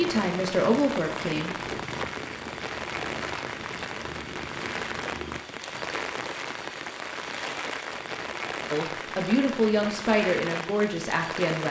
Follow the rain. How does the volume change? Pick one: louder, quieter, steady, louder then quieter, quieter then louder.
steady.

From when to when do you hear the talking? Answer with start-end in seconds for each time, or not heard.
0.0-1.6, 8.7-11.6.